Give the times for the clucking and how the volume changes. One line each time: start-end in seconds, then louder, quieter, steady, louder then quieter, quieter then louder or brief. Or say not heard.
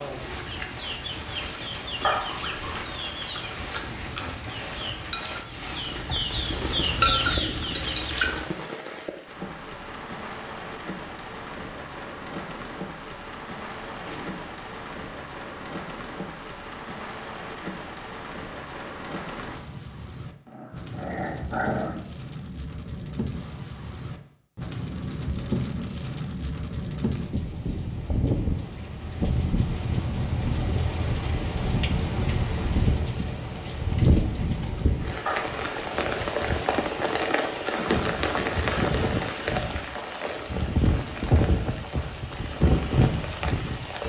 0.1-8.6 louder.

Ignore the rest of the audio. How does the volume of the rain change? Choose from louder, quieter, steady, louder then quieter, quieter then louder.
louder.